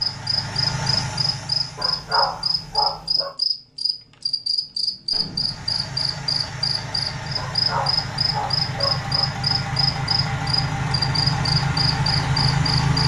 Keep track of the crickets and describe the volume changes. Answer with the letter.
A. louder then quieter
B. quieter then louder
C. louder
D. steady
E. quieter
D.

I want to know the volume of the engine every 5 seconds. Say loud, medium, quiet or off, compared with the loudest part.
medium, medium, loud.